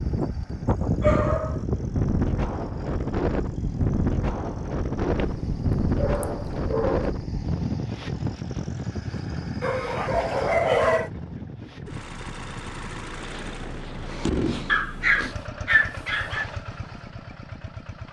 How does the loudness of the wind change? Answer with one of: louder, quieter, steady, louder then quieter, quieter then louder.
quieter.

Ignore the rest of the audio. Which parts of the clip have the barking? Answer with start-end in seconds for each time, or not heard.
1.0-1.6, 5.3-7.2, 9.6-11.1, 14.7-16.4.